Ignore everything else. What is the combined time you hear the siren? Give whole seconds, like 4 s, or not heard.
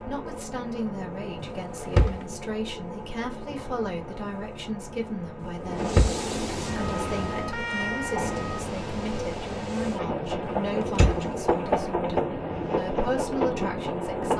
2 s.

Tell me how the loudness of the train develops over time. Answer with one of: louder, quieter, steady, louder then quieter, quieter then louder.
louder.